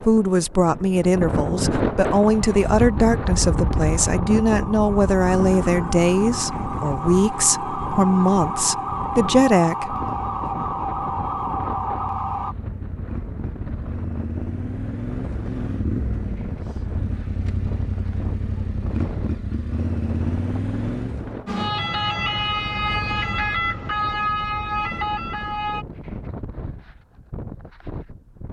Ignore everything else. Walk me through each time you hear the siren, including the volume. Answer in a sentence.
The siren can be heard from 2.2 to 12.6 s, getting louder; and from 21.4 to 25.9 s, at a steady volume.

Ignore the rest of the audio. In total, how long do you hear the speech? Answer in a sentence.
You can hear the speech for 10 seconds altogether.